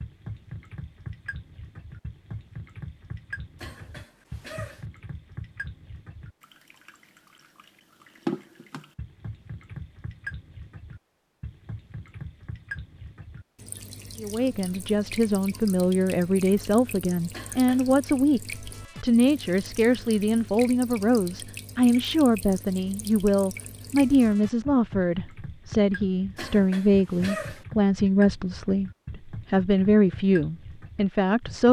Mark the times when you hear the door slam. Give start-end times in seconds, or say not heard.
not heard.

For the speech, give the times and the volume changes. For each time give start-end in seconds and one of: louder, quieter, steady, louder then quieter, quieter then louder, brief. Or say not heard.
14.2-31.6 steady.